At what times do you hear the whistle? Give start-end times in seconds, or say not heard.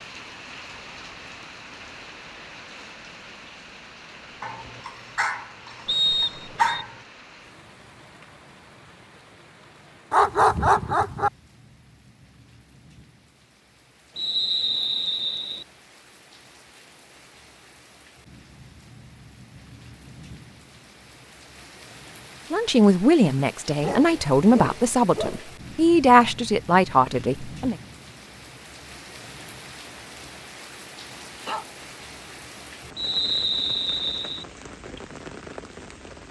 5.8-6.8, 14.2-15.7, 33.0-34.5.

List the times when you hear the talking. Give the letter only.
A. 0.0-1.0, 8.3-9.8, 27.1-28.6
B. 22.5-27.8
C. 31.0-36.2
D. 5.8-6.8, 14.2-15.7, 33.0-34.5
B.